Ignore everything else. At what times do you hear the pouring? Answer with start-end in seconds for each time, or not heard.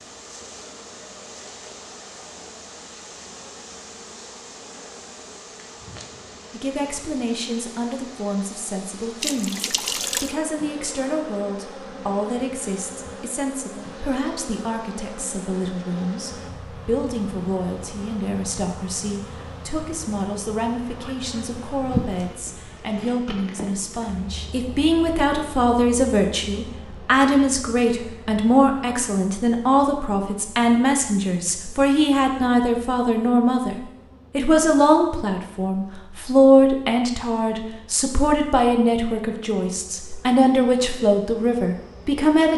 9.2-10.3, 21.8-22.2.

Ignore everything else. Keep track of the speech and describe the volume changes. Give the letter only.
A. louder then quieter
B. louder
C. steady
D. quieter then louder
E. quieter
B.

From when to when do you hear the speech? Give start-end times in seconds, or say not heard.
6.5-42.5.